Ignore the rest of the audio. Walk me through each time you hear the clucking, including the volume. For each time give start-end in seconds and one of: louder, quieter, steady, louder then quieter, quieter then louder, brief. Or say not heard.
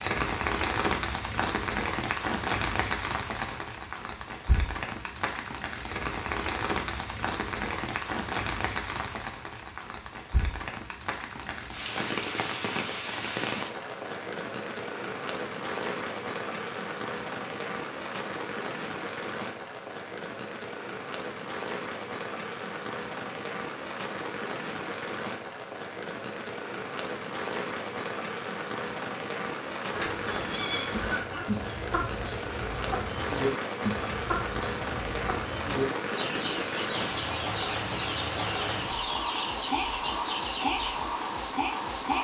29.9-41.0 steady.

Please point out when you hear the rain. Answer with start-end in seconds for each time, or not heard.
0.0-42.1.